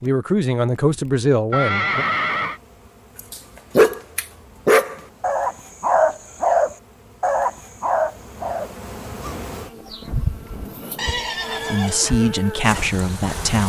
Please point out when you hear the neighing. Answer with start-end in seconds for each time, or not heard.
1.5-2.6, 10.9-12.1.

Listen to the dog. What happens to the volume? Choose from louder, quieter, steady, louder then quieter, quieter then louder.
quieter.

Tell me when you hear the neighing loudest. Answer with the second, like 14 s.
2 s.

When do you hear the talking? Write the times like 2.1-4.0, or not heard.
0.0-2.0, 11.7-13.6.